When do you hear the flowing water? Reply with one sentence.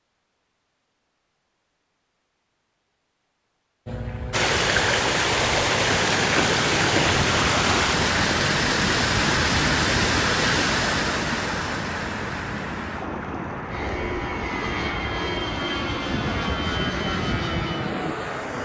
The flowing water can be heard from 4.3 to 18.6 s.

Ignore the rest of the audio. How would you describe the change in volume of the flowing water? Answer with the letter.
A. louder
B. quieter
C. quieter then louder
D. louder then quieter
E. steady
B.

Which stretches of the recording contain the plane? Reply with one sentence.
You can hear the plane from 3.9 to 18.6 s.